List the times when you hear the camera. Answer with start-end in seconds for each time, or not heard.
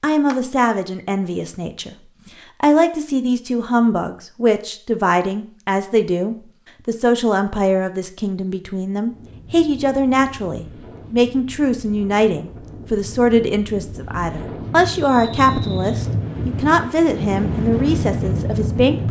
not heard.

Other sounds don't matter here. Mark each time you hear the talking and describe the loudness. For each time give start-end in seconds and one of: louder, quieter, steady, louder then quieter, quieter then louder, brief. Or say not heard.
0.0-1.9 brief
2.6-19.0 steady.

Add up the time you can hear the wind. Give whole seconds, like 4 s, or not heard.
10 s.